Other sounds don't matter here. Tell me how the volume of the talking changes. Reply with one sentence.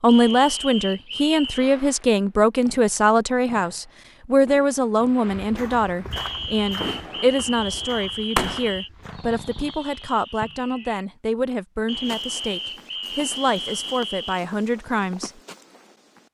The volume of the talking goes down.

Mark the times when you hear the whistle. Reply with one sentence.
You can hear the whistle from 0.1 to 1.7 s, from 6.1 to 8.9 s and from 11.8 to 14.4 s.